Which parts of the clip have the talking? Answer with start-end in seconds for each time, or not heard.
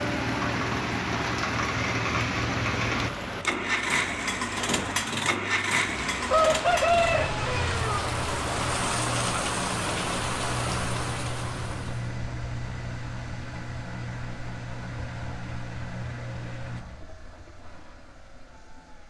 not heard.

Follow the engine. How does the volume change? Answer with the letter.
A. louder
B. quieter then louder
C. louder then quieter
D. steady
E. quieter
E.